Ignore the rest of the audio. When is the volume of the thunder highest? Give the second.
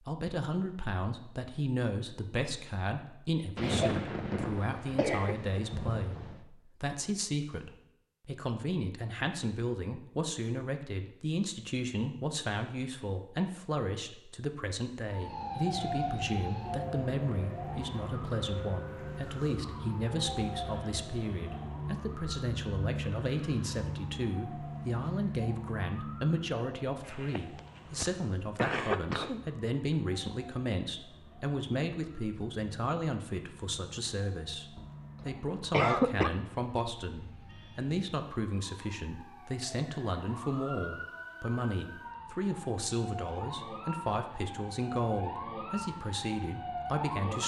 4 s.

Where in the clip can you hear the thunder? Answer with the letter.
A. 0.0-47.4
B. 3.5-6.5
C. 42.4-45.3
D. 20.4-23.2
B.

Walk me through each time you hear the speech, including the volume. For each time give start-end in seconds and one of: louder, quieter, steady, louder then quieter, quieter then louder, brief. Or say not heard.
0.0-47.4 steady.